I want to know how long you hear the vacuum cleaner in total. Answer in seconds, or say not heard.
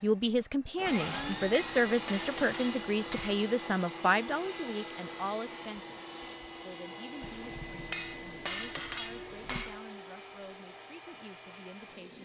12 s.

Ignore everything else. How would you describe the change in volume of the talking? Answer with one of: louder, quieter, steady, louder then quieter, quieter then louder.
quieter.